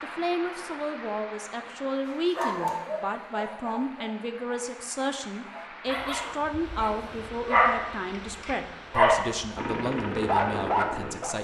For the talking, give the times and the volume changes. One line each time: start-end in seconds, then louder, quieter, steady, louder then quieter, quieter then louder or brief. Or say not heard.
0.0-11.3 steady.